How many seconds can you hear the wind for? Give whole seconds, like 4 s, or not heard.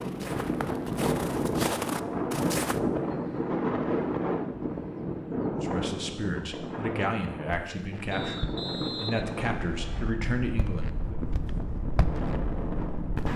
13 s.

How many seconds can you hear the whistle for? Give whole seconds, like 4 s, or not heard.
2 s.